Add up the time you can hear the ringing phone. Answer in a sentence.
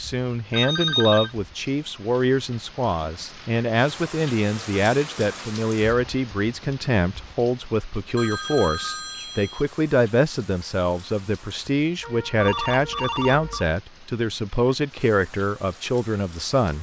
The ringing phone can be heard for 4 seconds in total.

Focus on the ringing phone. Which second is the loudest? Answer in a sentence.
The loudest moment of the ringing phone is at 1 second.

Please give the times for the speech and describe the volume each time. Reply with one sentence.
The speech can be heard from 0.0 to 16.7 s, at a steady volume.